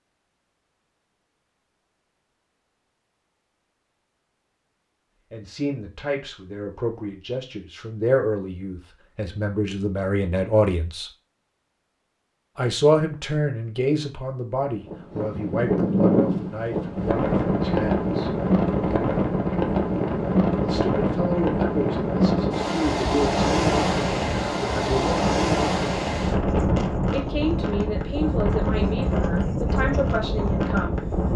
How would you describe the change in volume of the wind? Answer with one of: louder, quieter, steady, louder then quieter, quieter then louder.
steady.